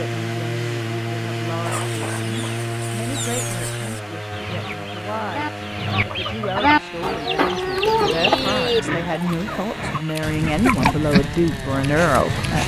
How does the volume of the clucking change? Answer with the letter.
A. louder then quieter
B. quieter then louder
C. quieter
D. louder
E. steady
A.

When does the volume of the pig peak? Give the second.
11 s.